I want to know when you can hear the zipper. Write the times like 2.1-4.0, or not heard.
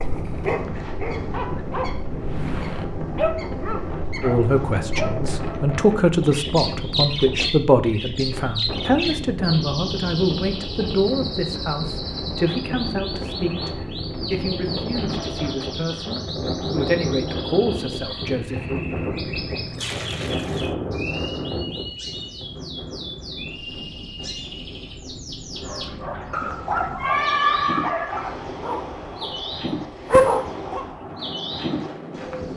not heard.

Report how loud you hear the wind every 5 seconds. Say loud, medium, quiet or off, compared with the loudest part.
loud, loud, loud, loud, loud, medium, medium.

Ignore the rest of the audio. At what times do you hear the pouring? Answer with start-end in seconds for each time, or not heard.
19.4-20.8.